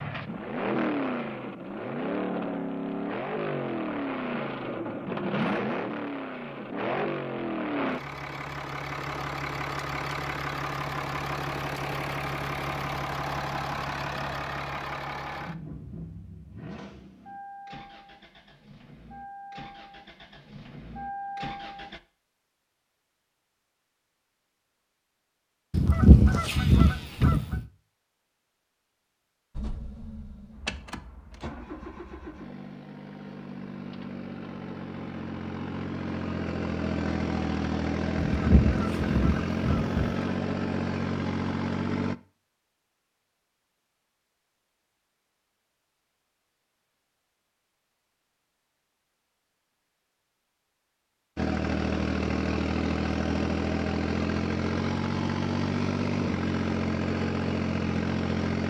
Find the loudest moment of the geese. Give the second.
26 s.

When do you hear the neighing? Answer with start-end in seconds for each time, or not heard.
not heard.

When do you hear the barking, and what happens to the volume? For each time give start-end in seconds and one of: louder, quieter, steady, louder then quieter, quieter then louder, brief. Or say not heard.
not heard.